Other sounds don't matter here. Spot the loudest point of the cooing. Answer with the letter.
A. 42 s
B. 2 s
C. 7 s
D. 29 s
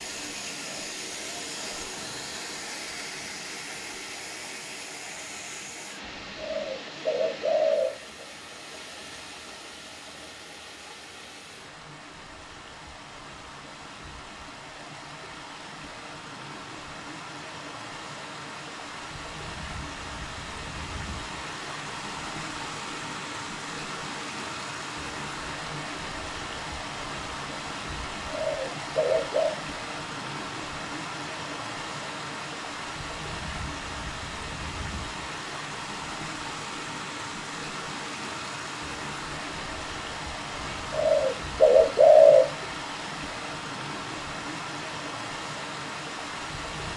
A.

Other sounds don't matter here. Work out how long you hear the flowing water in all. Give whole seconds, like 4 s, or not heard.
47 s.